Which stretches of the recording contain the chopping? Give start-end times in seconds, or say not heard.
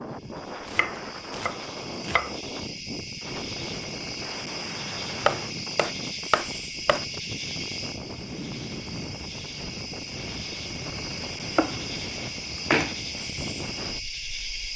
0.7-2.3, 5.2-7.0, 11.6-12.9.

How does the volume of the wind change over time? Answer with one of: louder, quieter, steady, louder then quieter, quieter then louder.
steady.